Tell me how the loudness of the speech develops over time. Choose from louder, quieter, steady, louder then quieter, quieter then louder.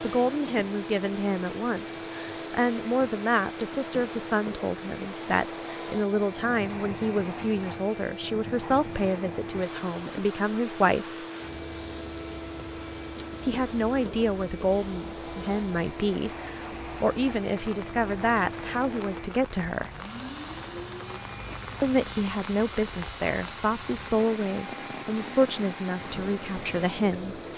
steady.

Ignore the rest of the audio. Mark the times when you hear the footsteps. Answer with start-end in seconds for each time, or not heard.
not heard.